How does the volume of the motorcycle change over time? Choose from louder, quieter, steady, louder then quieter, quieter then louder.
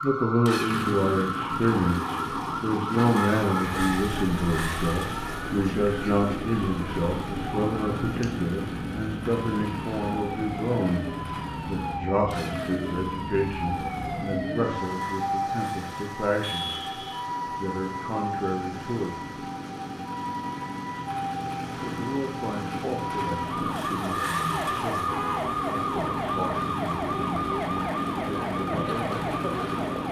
quieter then louder.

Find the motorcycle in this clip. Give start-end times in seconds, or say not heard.
0.0-30.0.